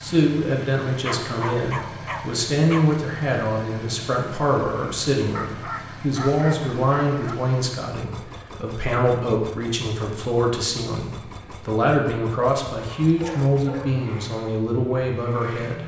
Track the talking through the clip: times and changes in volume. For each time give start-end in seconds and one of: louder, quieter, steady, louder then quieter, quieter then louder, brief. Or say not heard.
0.0-15.8 steady.